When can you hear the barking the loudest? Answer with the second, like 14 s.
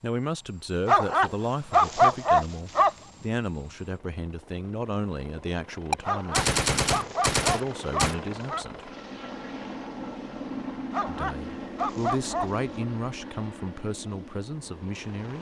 2 s.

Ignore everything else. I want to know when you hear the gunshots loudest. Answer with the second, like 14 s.
7 s.